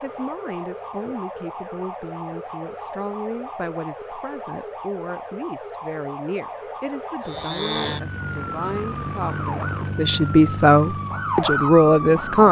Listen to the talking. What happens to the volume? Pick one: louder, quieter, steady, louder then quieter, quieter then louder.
louder.